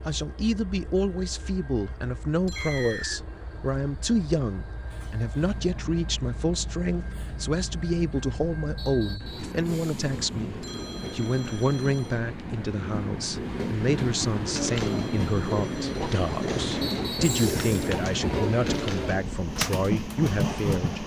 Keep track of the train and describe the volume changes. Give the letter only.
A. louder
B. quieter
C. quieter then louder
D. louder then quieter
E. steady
A.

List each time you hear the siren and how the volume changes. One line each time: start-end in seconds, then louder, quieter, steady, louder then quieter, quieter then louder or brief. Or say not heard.
not heard.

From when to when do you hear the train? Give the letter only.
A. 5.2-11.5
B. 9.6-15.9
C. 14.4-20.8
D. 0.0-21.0
D.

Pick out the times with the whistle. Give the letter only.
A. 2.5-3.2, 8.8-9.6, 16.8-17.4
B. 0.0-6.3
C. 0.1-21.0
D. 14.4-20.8
A.